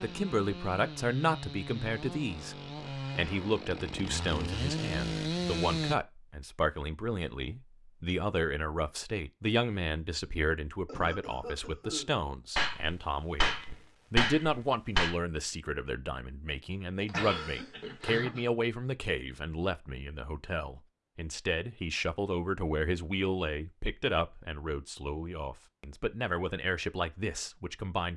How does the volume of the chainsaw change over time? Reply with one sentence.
The volume of the chainsaw goes up.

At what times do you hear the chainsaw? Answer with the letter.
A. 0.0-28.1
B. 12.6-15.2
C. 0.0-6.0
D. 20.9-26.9
C.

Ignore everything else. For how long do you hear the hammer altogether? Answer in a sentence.
You can hear the hammer for 3 seconds altogether.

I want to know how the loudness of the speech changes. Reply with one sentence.
The volume of the speech stays about the same.